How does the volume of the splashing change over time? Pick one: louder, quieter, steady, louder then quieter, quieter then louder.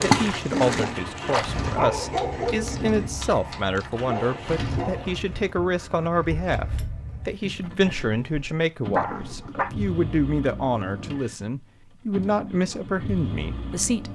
quieter.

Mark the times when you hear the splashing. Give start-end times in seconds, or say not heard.
0.0-4.8.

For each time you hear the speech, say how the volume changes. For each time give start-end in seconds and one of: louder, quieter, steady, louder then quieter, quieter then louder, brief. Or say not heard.
0.0-14.1 steady.